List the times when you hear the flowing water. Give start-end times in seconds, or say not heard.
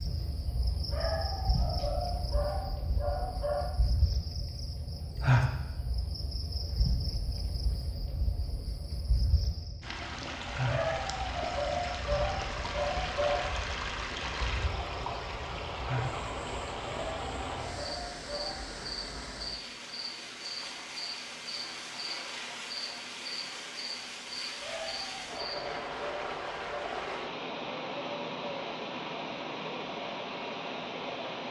9.8-31.4.